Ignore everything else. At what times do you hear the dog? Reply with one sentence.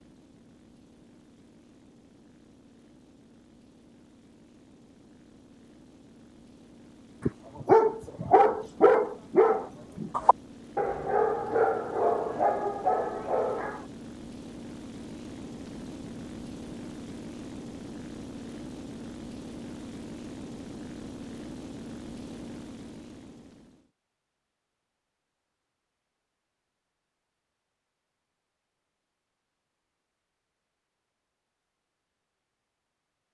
You can hear the dog from 7.2 to 13.8 s.